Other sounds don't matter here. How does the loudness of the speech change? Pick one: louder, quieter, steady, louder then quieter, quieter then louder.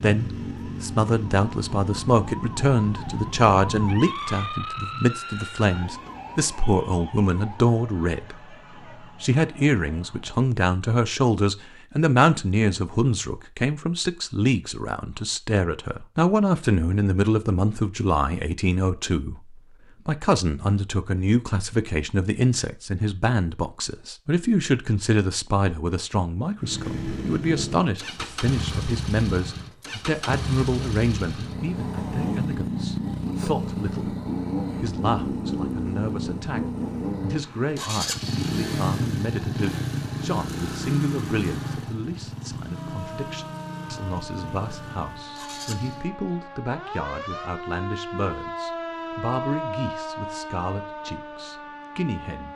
quieter.